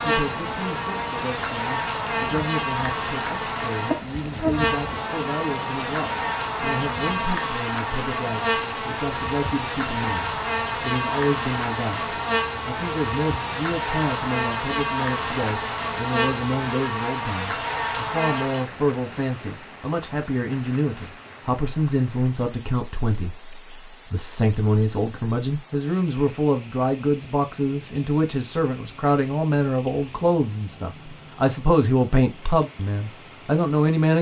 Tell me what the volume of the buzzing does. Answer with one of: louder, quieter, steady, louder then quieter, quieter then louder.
steady.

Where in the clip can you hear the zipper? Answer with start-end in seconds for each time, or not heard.
not heard.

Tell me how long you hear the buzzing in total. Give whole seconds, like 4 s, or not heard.
19 s.